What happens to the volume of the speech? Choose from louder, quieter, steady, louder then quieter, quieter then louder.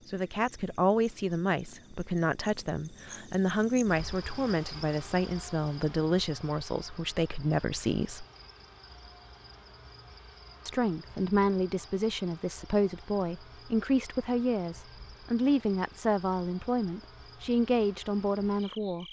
steady.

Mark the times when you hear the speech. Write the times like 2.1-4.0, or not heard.
0.1-8.2, 10.7-19.0.